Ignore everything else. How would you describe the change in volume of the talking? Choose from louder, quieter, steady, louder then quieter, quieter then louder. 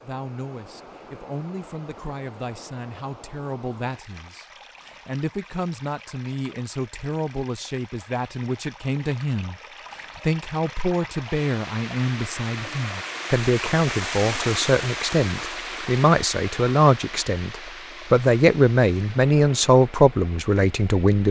louder.